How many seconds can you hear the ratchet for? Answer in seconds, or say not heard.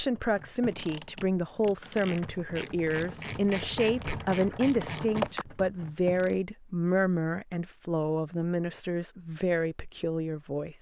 6 s.